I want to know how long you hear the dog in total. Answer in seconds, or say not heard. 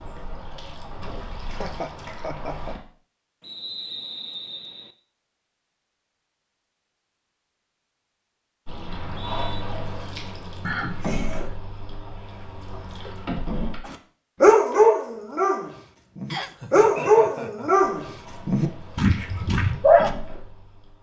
6 s.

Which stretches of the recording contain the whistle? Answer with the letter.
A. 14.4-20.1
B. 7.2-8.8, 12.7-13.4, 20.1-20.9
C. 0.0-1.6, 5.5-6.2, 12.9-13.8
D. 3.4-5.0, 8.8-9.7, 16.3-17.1
D.